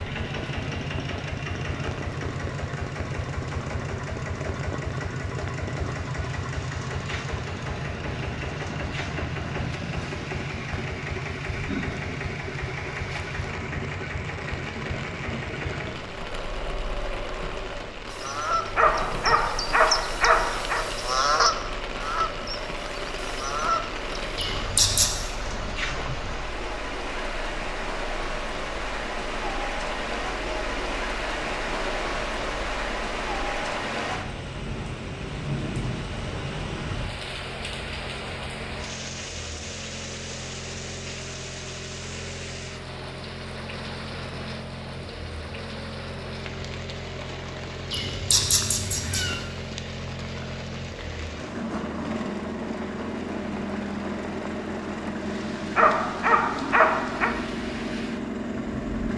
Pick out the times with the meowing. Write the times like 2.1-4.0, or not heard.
24.4-25.1, 47.9-49.4.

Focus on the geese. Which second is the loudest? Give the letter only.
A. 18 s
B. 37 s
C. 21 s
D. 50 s
C.